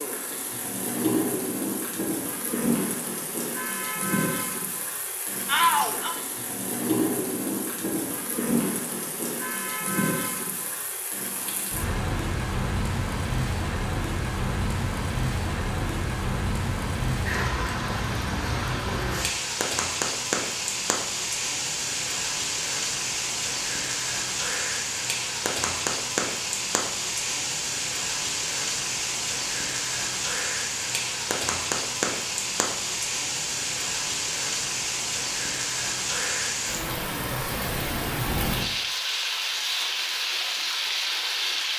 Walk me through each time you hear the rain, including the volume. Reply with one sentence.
The rain can be heard from 0.0 to 41.7 s, at a steady volume.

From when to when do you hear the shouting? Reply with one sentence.
The shouting can be heard from 5.5 to 6.2 s.